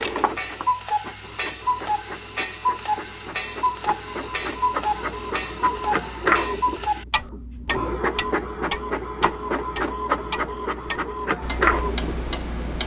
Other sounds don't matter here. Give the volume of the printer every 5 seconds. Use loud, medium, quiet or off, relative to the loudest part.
medium, loud, loud.